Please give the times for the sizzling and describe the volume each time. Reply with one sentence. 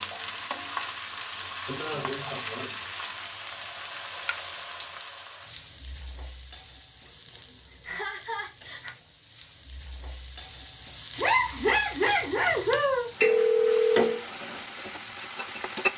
You can hear the sizzling from 0.0 to 15.9 s, getting quieter then louder.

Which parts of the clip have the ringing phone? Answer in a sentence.
You can hear the ringing phone from 13.2 to 14.2 s.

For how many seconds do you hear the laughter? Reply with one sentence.
You can hear the laughter for 5 seconds altogether.